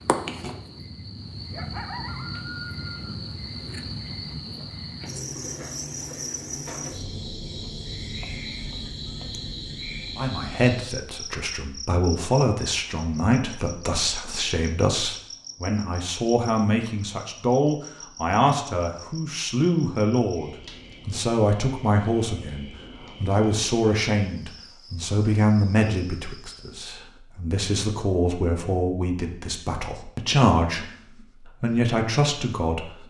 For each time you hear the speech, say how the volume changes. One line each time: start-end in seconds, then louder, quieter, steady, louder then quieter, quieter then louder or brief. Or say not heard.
10.2-33.0 steady.